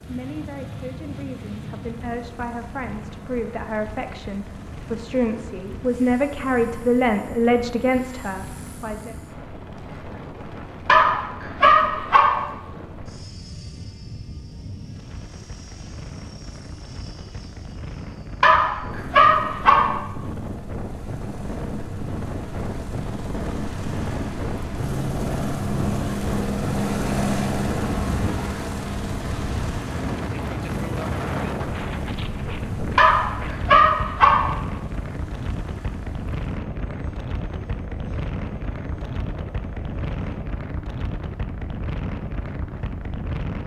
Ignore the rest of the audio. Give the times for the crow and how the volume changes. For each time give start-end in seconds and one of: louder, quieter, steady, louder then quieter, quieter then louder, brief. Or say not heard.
not heard.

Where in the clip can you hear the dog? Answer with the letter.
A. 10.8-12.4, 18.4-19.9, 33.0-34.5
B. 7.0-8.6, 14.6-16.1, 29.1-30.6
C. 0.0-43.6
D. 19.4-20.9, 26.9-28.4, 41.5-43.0
A.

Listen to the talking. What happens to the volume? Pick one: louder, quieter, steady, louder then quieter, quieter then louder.
louder.